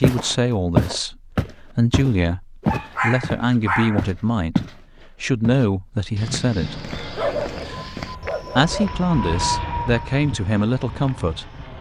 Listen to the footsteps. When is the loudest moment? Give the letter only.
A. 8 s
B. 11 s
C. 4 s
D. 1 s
D.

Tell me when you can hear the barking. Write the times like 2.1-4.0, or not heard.
2.6-4.0, 7.2-8.9.